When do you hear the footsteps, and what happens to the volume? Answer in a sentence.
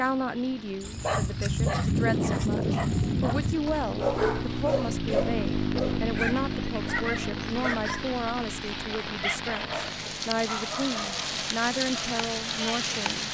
You can't hear the footsteps here.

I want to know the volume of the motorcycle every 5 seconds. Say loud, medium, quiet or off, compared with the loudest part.
loud, loud, quiet.